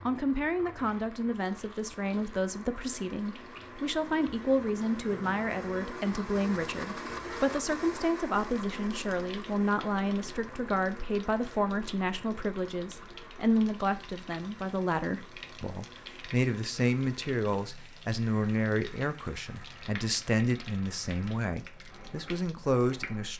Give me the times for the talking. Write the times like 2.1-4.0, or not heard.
0.1-23.3.